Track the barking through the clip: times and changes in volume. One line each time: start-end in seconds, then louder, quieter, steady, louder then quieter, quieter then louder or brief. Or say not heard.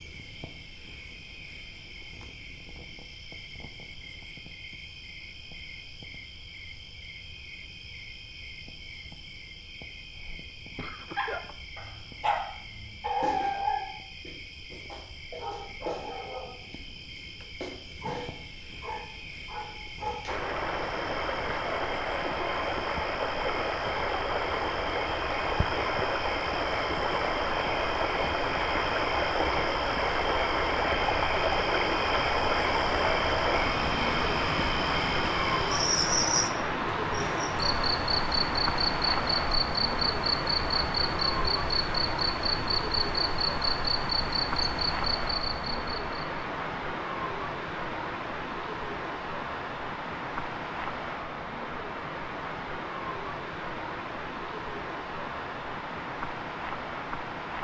11.2-20.5 quieter.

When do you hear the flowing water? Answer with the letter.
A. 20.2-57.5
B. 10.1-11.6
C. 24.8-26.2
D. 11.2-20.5
A.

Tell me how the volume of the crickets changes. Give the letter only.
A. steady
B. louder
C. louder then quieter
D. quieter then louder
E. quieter
B.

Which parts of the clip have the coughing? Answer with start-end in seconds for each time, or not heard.
10.1-11.6.